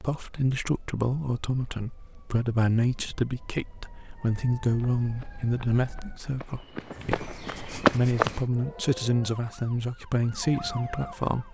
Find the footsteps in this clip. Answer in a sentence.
You can hear the footsteps from 4.7 to 8.4 s.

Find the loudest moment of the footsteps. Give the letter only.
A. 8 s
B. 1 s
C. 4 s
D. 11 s
A.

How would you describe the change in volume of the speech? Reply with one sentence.
The loudness of the speech stays about the same.